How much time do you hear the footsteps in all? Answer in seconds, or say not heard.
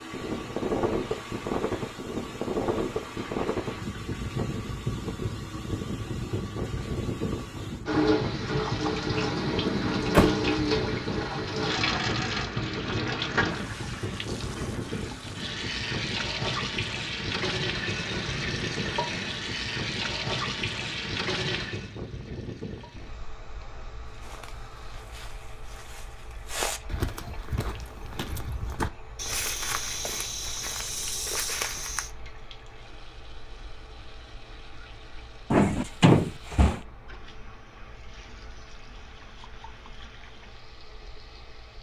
8 s.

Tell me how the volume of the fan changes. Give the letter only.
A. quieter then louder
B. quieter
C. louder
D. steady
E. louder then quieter
B.